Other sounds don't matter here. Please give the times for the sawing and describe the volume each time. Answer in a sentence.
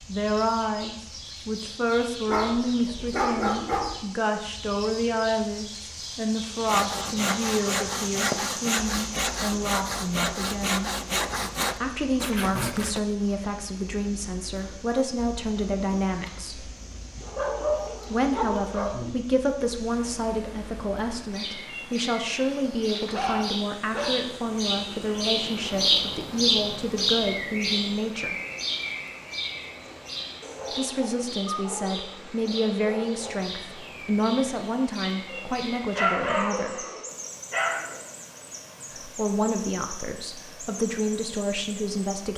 The sawing can be heard from 6.6 to 13.0 s, at a steady volume.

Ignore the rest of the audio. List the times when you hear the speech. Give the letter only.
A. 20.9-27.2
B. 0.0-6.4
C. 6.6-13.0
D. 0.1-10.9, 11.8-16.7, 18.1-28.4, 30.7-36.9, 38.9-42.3
D.